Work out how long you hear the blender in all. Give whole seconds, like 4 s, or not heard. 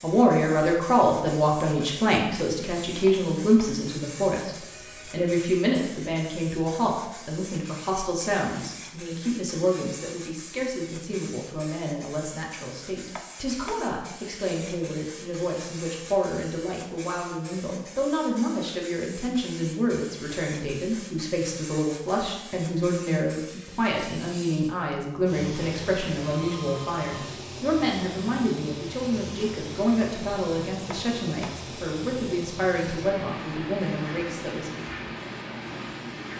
not heard.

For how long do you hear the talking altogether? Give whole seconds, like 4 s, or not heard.
35 s.